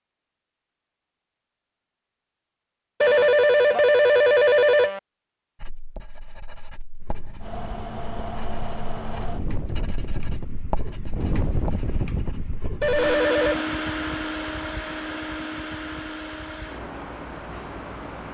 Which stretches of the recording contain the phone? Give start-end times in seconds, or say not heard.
3.0-5.0, 12.8-13.7.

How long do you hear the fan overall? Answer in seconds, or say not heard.
11 s.